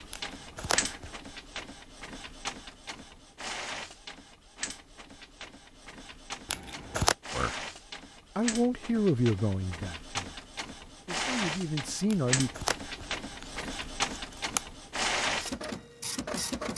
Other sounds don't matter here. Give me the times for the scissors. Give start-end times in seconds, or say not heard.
0.1-1.1, 6.5-7.2, 12.1-14.7.